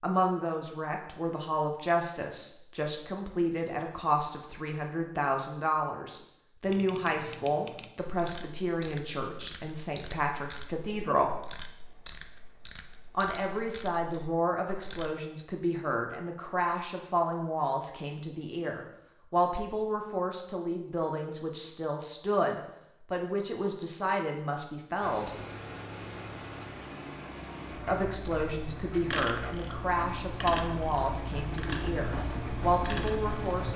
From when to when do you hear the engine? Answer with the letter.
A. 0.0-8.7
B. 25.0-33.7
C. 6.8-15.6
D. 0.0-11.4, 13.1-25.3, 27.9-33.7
B.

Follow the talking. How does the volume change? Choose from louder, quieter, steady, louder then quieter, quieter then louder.
steady.